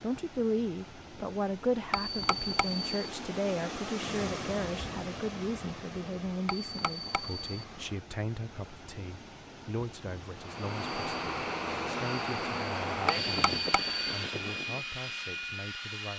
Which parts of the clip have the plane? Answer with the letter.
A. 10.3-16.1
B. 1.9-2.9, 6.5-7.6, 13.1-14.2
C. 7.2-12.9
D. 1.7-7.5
A.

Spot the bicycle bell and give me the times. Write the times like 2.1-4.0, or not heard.
1.9-2.9, 6.5-7.6, 13.1-14.2.